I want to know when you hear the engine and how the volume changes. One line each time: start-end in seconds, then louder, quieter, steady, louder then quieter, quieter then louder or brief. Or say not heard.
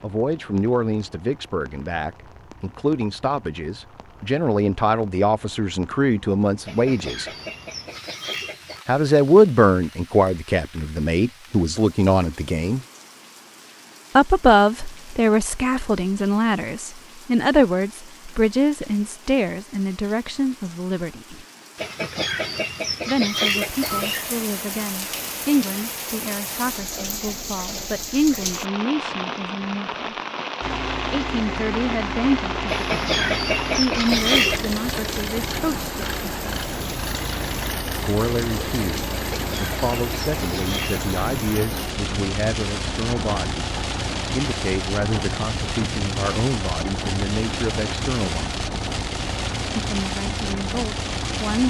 30.6-51.6 steady.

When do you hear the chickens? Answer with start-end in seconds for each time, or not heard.
6.7-8.8, 21.8-24.2, 32.6-34.6, 39.3-41.0.